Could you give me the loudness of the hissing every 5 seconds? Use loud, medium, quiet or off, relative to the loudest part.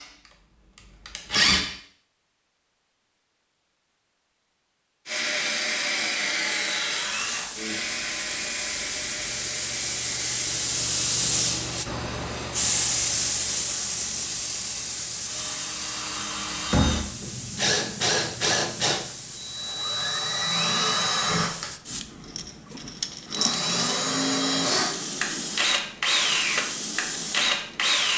off, medium, loud, medium, medium, medium.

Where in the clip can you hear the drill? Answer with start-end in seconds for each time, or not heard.
0.0-1.8, 5.0-28.1.